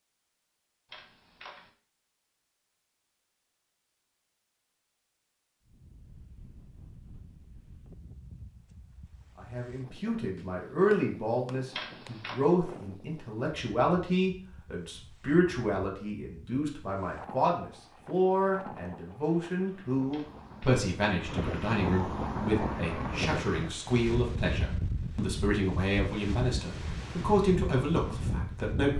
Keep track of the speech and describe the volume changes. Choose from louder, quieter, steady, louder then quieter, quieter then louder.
steady.